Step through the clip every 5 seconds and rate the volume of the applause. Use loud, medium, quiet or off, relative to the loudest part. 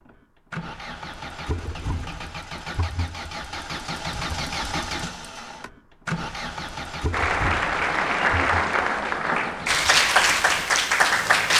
off, loud, loud.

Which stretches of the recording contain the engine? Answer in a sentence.
The engine can be heard from 0.1 to 11.5 s.